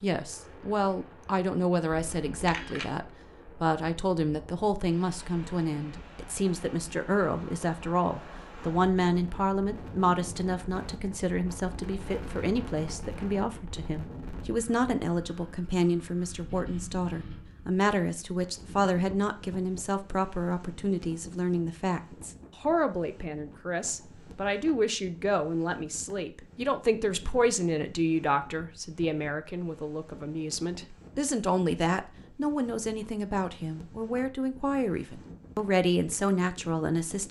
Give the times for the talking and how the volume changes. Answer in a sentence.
The talking can be heard from 0.0 to 37.2 s, at a steady volume.